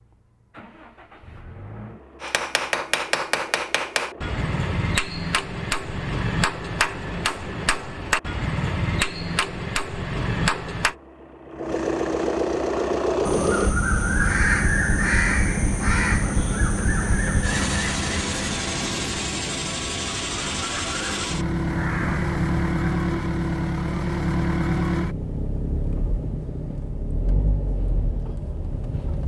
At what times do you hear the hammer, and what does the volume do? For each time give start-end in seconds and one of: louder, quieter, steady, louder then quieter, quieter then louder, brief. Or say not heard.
2.2-10.9 steady.